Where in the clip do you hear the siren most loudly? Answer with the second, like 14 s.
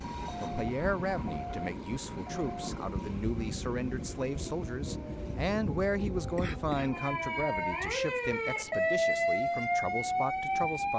9 s.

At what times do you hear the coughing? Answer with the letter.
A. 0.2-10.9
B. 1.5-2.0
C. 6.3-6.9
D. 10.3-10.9
C.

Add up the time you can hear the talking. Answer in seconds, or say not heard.
11 s.